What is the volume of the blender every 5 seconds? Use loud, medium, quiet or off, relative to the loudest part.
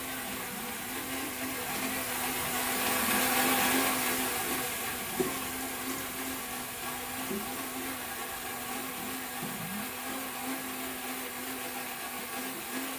loud, medium, medium.